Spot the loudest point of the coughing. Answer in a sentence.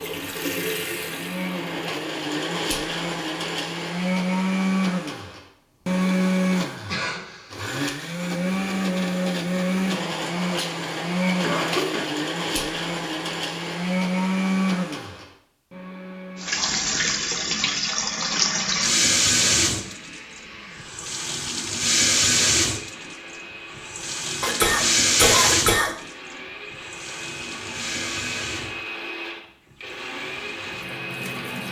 The volume of the coughing peaks at 25 seconds.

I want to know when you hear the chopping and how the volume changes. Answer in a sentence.
The chopping can't be heard in this clip.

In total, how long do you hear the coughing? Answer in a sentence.
The coughing can be heard for 3 seconds in total.